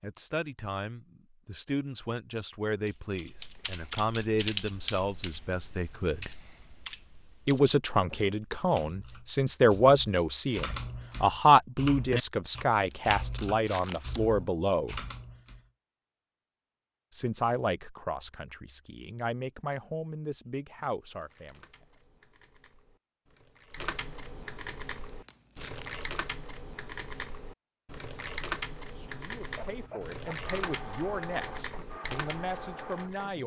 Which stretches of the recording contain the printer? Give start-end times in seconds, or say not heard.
29.4-33.4.